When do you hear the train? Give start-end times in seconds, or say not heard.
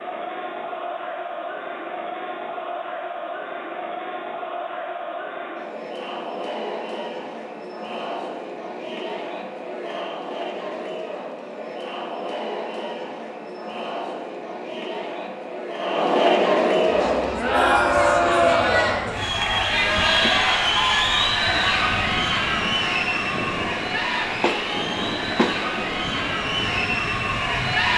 16.8-27.9.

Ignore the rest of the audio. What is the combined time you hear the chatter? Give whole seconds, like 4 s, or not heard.
28 s.